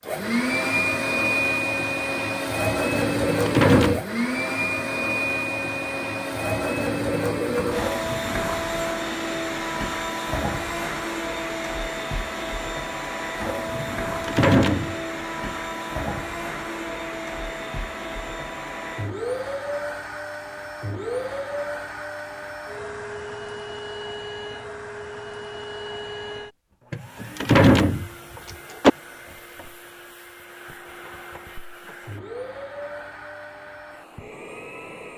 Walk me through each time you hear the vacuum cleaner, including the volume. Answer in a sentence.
You can hear the vacuum cleaner from 0.0 to 35.1 s, getting quieter.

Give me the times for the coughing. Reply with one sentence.
The coughing can't be heard in this clip.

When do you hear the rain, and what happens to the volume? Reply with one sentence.
The rain can't be heard in this clip.